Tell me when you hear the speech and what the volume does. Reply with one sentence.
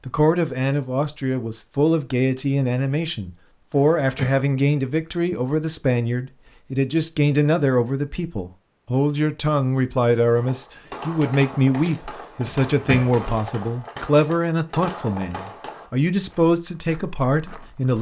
The speech can be heard from 0.1 to 17.9 s, at a steady volume.